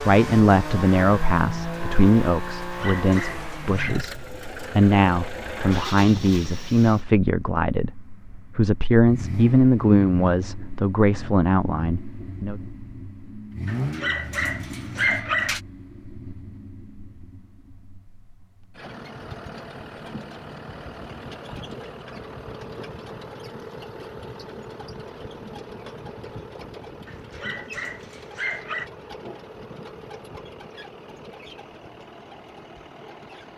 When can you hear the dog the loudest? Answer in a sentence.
The volume of the dog peaks at 15 seconds.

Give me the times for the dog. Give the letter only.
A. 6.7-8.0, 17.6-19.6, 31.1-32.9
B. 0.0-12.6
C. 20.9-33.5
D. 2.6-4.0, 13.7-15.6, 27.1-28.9
D.